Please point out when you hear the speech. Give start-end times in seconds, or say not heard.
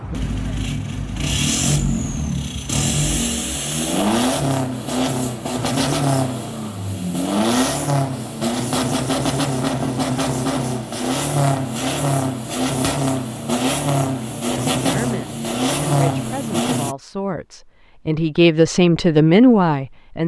14.5-20.2.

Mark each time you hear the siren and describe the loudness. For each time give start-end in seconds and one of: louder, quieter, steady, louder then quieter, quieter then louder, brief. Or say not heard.
not heard.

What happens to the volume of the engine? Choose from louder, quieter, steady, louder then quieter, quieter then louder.
steady.